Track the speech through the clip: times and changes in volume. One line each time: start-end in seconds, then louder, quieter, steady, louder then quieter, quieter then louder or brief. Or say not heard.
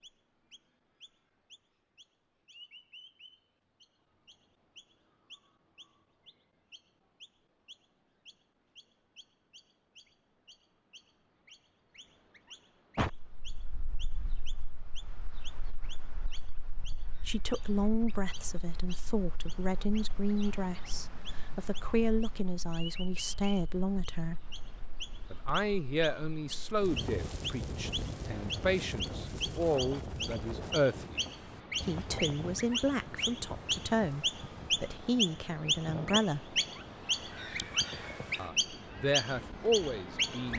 17.2-24.4 steady
25.3-36.5 steady
38.4-40.5 brief.